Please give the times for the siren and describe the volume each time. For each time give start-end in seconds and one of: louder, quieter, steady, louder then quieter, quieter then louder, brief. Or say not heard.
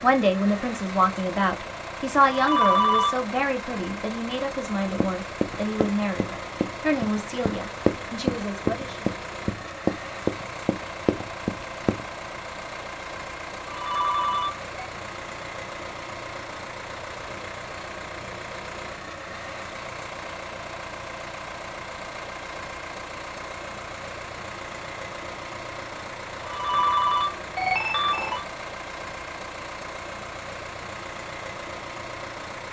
not heard.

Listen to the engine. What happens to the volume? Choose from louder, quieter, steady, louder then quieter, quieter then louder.
steady.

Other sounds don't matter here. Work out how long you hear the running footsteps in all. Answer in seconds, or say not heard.
7 s.